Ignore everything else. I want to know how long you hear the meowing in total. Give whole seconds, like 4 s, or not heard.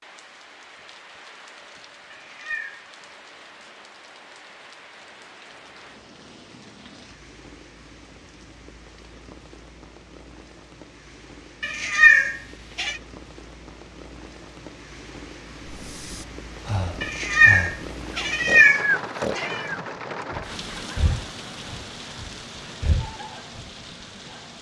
5 s.